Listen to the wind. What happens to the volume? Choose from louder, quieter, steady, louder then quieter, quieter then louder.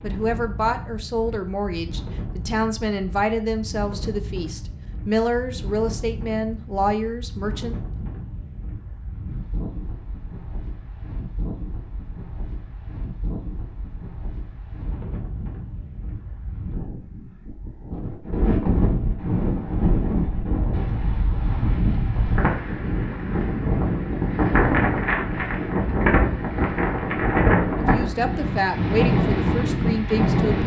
louder.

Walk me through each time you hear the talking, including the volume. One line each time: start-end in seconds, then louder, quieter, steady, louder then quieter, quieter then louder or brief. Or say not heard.
0.0-7.8 steady
27.8-30.6 brief.